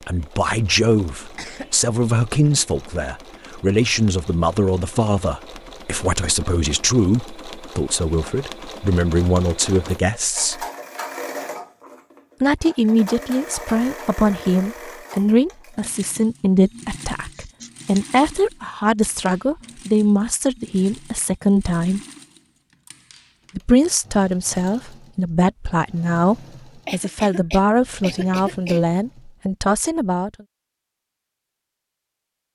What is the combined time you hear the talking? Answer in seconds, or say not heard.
27 s.